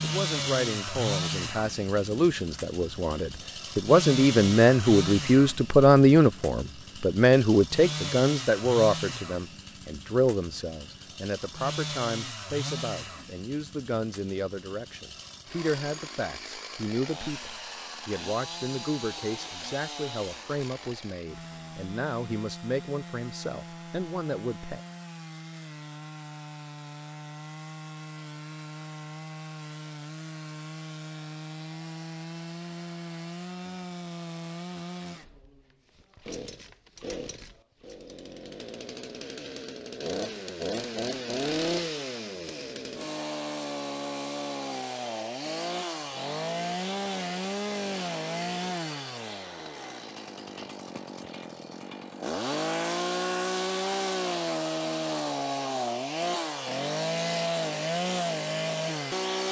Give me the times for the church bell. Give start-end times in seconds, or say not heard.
not heard.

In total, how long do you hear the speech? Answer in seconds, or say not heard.
25 s.